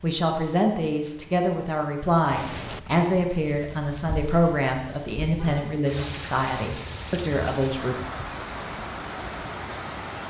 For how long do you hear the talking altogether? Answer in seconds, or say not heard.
8 s.